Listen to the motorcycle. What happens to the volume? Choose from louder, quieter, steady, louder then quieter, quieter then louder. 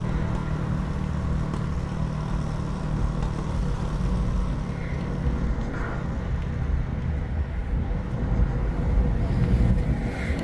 quieter.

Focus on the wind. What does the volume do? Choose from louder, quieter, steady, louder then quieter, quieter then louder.
louder.